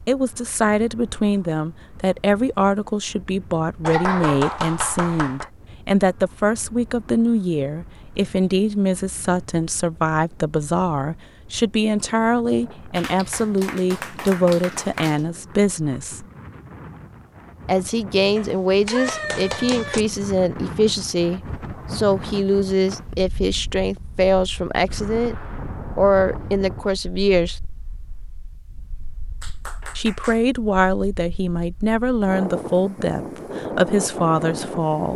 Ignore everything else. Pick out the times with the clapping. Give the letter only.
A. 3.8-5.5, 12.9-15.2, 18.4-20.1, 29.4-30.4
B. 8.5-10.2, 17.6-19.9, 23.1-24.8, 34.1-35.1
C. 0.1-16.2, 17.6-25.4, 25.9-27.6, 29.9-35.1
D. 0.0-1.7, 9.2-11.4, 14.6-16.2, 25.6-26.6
A.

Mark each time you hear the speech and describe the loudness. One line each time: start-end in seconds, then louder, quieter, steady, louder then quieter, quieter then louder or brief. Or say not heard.
0.1-16.2 steady
17.6-25.4 steady
25.9-27.6 brief
29.9-35.1 steady.